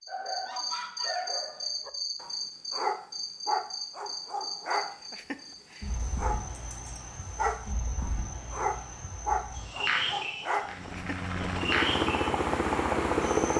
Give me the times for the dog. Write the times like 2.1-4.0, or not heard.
0.1-11.2.